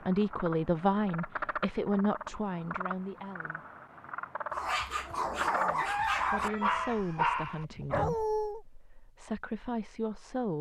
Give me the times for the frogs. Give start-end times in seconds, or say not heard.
0.0-6.8.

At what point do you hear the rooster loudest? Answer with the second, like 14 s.
6 s.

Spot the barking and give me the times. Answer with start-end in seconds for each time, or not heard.
4.5-8.6.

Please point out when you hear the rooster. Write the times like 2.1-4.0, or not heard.
5.8-8.2.